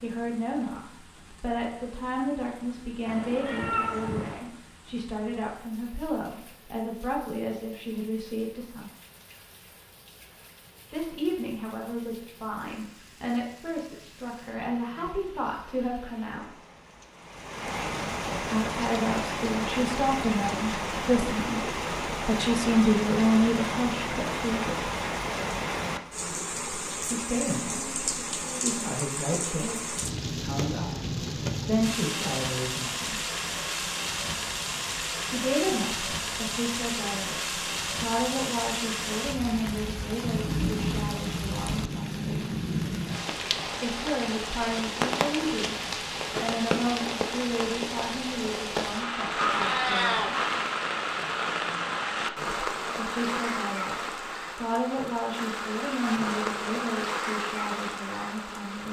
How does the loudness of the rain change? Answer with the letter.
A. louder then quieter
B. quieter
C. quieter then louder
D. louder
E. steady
D.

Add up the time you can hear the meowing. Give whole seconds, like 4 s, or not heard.
2 s.